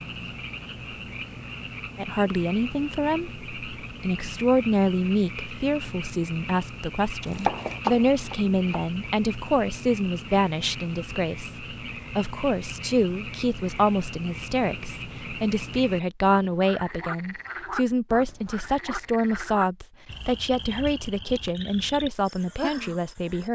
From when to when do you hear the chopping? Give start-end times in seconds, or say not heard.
7.2-8.8.